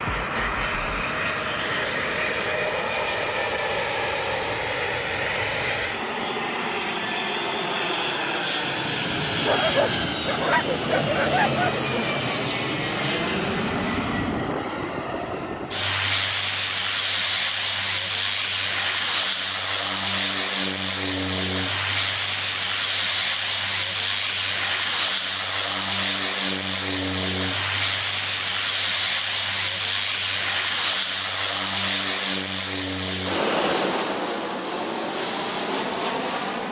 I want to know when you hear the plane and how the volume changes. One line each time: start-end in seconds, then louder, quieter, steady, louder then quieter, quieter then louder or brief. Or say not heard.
0.0-36.6 steady.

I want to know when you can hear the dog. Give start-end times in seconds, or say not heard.
9.4-12.2.